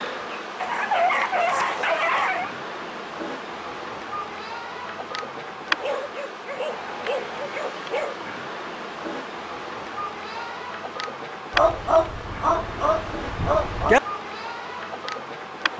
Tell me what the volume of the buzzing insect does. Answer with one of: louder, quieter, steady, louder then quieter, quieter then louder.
steady.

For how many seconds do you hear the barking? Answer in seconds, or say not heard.
7 s.